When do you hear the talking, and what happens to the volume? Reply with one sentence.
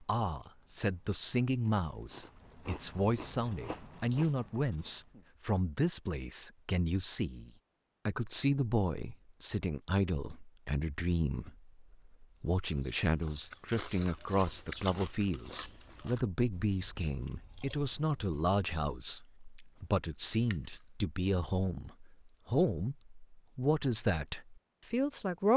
The talking can be heard from 0.0 to 25.5 s, at a steady volume.